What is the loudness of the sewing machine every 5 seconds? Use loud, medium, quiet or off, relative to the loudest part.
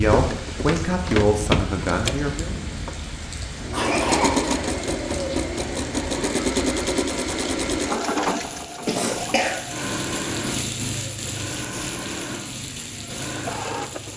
loud, loud, medium.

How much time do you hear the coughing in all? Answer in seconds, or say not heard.
2 s.